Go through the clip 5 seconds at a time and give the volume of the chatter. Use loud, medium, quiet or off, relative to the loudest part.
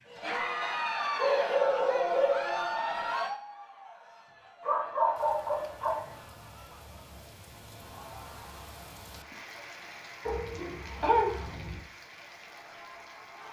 loud, quiet, quiet.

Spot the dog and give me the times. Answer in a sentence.
The dog can be heard from 1.1 to 2.6 s, from 4.6 to 6.1 s and from 10.2 to 11.8 s.